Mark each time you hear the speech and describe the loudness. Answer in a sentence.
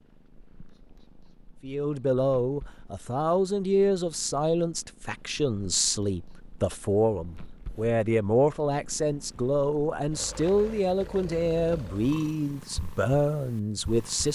You can hear the speech from 1.6 to 14.3 s, at a steady volume.